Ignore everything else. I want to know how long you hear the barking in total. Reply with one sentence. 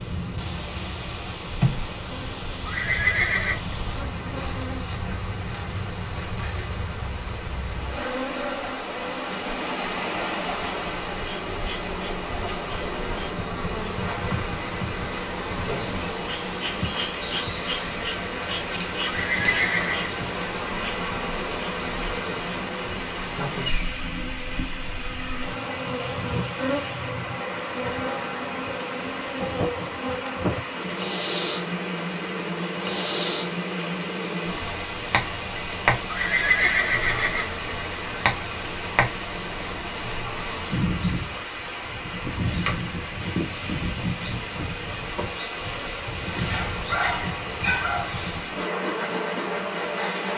The barking can be heard for 2 seconds in total.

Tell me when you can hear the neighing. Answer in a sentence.
The neighing can be heard from 2.6 to 3.6 s, from 19.1 to 20.1 s and from 36.0 to 37.5 s.